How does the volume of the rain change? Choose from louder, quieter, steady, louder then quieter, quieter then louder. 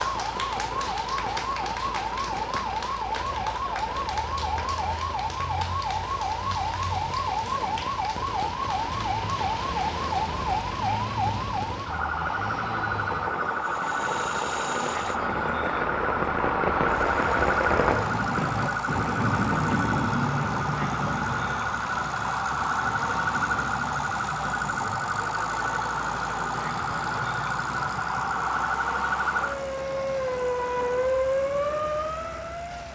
louder then quieter.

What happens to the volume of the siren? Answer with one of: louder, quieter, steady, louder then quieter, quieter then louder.
steady.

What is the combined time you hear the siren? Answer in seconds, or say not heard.
33 s.